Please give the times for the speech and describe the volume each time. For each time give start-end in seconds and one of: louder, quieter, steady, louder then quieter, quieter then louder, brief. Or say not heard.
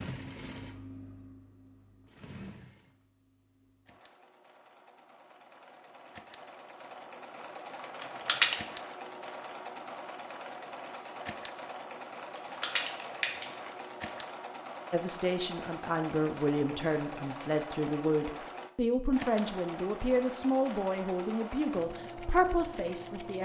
14.9-23.3 steady.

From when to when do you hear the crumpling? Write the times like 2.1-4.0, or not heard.
8.0-8.6, 12.3-14.1.